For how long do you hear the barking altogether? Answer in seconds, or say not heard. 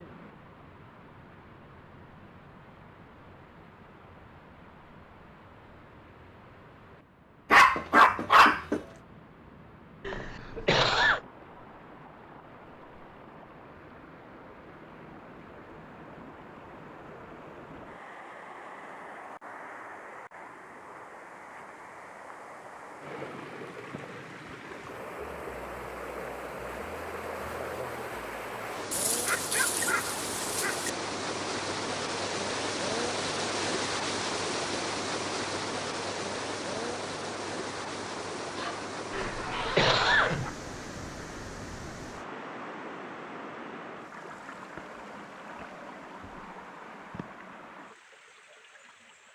5 s.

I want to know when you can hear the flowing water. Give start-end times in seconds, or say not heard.
0.0-49.2.